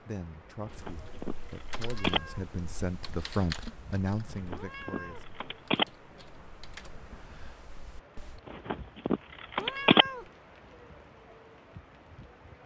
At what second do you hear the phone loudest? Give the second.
10 s.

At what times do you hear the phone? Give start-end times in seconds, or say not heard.
0.7-2.2, 4.3-5.8, 8.5-10.1.